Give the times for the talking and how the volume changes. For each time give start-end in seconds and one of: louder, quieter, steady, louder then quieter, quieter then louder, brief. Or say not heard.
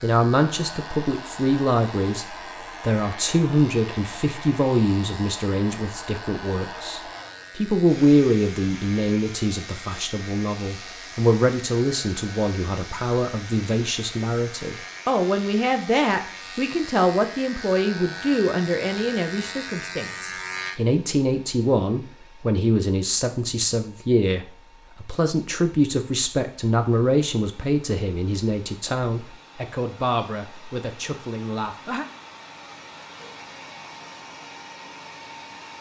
0.0-32.0 steady.